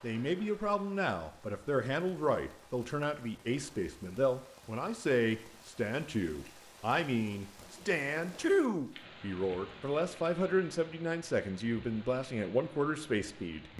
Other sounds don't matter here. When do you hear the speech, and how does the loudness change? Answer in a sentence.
You can hear the speech from 0.0 to 13.7 s, at a steady volume.